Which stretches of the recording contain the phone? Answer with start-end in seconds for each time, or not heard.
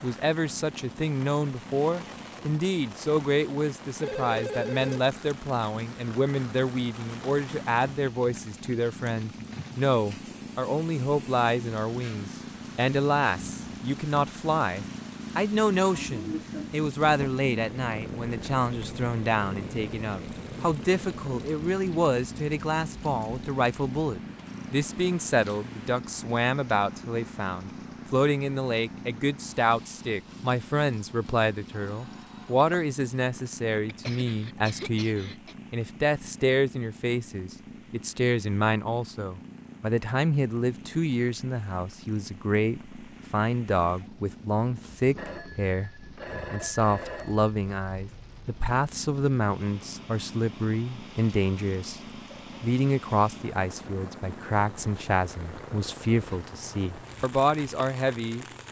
4.0-5.0, 31.7-32.7, 45.1-47.5.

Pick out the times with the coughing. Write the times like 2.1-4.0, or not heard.
15.9-16.7, 33.9-35.5.